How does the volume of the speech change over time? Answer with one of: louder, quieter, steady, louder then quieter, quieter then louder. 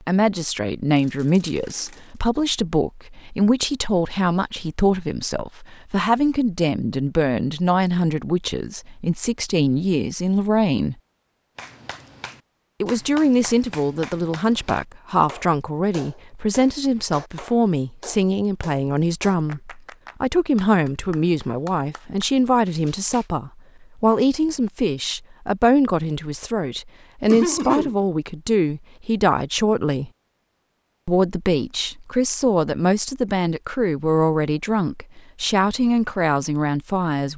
steady.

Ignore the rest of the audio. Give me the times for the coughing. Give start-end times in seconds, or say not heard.
0.9-2.0, 27.3-27.9.